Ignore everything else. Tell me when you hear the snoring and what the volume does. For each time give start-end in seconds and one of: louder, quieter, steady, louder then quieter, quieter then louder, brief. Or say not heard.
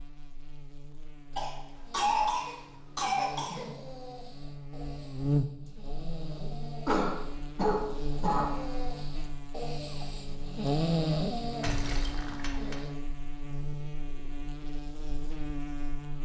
1.9-12.9 louder.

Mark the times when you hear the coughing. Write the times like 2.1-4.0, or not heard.
1.4-3.7, 6.8-8.5, 11.6-12.8.